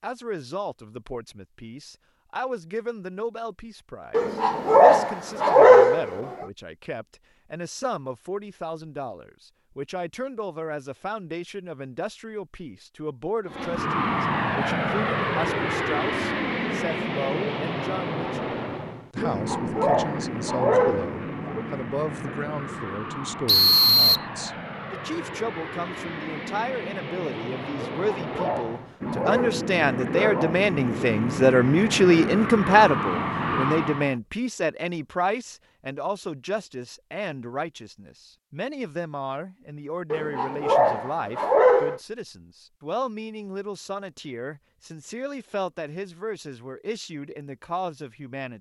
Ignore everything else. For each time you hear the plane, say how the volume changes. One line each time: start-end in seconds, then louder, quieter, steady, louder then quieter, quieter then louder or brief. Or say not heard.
13.4-34.1 quieter then louder.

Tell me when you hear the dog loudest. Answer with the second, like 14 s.
6 s.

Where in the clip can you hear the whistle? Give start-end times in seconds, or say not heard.
23.4-24.2.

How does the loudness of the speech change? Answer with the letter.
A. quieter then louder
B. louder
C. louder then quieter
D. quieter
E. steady
C.